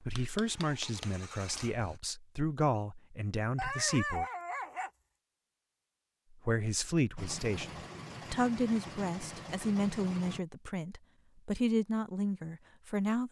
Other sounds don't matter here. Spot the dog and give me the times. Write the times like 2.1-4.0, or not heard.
3.5-4.9.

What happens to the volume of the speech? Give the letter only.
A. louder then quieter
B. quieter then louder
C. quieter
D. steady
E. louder
D.